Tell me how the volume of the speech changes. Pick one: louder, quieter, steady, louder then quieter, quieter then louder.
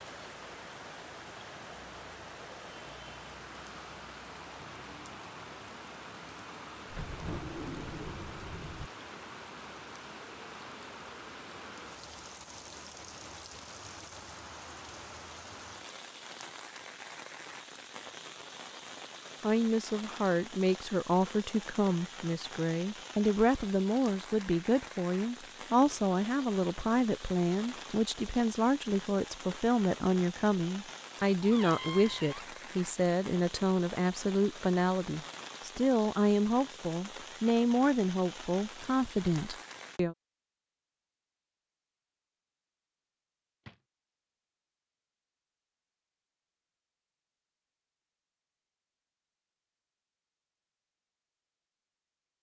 steady.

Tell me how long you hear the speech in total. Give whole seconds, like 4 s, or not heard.
21 s.